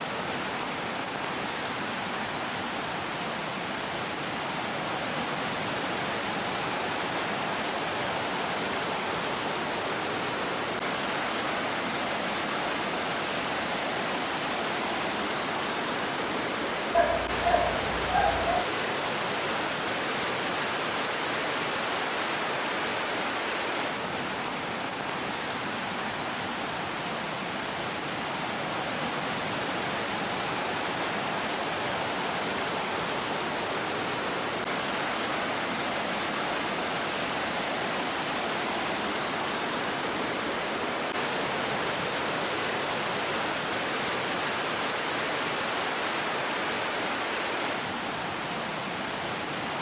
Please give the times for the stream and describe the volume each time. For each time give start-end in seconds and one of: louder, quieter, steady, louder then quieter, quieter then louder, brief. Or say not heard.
0.0-49.7 steady.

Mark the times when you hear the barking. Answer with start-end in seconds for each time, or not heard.
16.9-18.6.